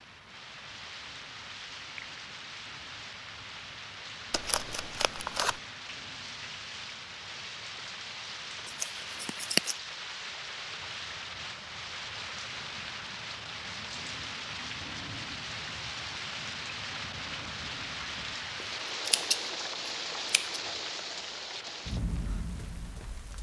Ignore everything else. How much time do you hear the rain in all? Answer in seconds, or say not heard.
23 s.